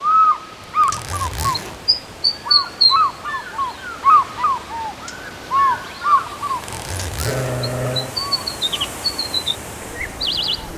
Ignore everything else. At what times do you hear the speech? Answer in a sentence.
You can't hear the speech here.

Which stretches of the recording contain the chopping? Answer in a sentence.
The chopping can't be heard in this clip.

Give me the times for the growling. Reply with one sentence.
The growling can be heard from 7.2 to 8.2 s.